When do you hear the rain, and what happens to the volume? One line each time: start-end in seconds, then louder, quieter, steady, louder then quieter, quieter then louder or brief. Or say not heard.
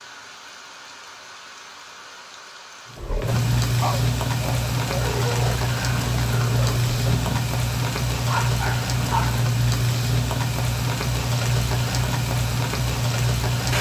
0.0-13.7 louder.